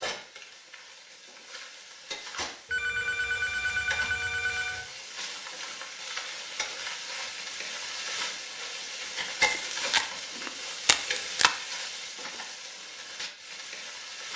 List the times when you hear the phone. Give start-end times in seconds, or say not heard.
2.7-4.8.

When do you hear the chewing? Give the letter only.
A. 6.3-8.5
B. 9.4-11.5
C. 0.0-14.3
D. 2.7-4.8
B.